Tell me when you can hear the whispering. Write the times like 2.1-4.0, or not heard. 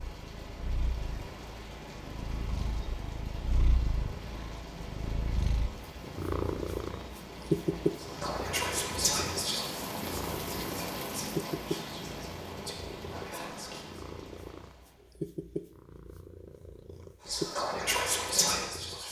8.0-14.1, 17.2-19.0.